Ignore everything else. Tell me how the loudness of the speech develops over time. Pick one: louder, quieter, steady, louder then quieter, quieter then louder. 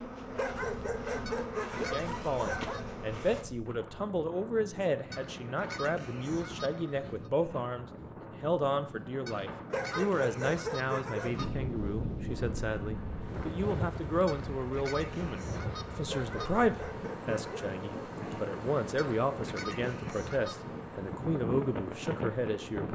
steady.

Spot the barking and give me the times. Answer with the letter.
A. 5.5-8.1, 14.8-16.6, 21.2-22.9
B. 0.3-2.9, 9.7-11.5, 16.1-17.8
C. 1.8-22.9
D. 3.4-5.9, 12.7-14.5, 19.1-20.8
B.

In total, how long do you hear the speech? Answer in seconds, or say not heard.
21 s.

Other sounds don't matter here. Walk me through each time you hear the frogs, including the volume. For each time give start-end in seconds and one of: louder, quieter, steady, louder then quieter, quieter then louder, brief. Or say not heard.
not heard.